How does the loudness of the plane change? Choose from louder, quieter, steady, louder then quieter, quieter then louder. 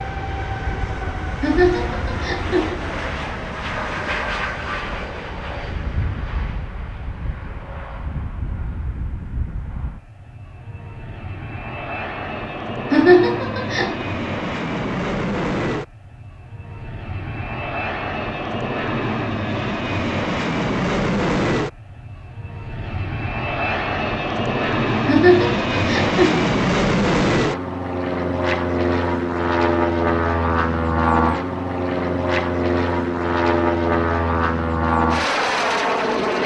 louder.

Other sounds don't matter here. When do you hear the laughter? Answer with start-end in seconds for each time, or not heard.
1.4-2.8, 12.9-14.1, 25.1-26.4.